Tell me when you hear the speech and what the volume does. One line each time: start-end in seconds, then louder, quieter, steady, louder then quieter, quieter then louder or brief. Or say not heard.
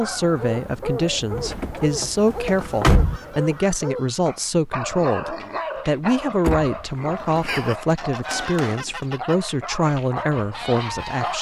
0.0-11.3 steady.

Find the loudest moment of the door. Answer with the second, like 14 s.
3 s.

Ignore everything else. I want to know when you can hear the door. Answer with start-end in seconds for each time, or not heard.
1.3-3.2, 6.4-7.5.